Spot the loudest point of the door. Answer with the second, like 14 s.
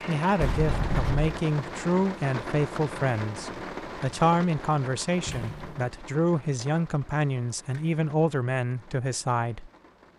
1 s.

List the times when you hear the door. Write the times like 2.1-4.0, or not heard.
0.3-1.3, 5.2-5.8.